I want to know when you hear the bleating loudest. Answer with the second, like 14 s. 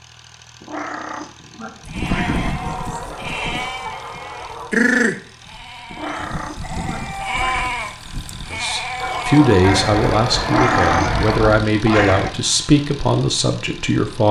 5 s.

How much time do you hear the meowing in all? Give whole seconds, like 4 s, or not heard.
6 s.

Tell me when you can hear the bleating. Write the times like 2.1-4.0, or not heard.
1.9-12.3.